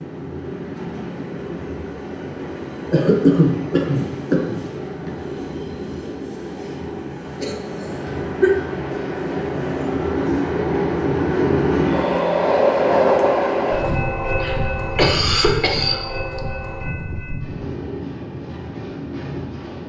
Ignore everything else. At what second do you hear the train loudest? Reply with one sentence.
The volume of the train peaks at 13 seconds.